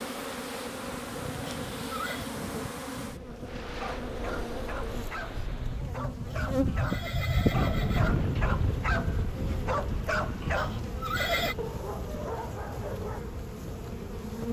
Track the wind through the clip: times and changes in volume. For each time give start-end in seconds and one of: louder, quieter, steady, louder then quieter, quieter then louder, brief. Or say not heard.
0.0-14.4 louder then quieter.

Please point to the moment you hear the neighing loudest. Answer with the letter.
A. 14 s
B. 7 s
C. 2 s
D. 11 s
D.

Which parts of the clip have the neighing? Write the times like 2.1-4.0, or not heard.
1.4-2.2, 6.2-8.1, 10.5-11.6.